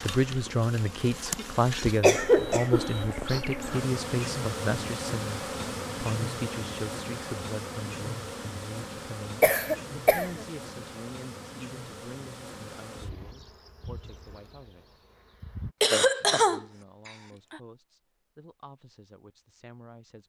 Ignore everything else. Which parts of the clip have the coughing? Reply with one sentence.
The coughing can be heard from 1.4 to 2.9 s, from 9.4 to 10.4 s and from 15.8 to 17.6 s.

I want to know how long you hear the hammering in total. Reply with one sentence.
The hammering can't be heard in this clip.